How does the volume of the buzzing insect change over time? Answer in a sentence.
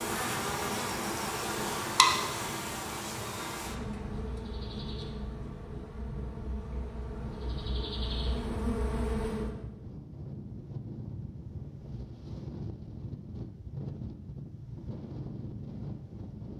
The volume of the buzzing insect goes down, then up.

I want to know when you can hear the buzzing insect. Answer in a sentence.
You can hear the buzzing insect from 0.0 to 9.6 s.